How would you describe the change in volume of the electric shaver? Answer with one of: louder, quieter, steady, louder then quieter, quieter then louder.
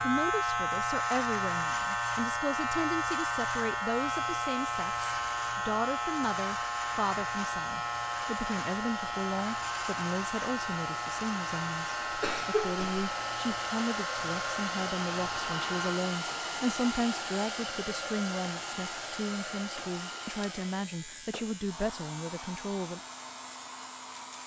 quieter.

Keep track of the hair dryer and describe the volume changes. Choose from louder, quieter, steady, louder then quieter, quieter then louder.
louder then quieter.